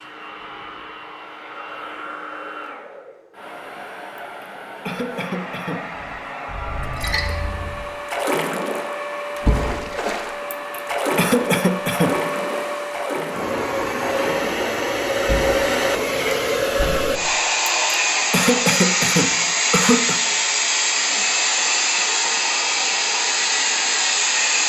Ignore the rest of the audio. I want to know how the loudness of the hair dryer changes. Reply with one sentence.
The loudness of the hair dryer goes up.